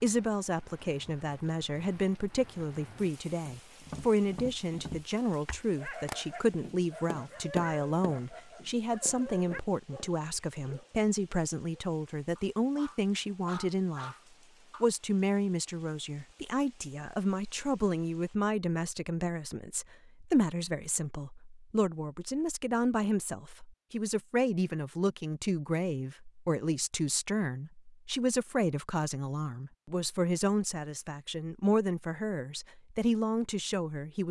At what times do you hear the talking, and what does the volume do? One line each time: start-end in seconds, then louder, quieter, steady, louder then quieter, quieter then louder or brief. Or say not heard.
0.0-14.2 steady
14.8-34.2 steady.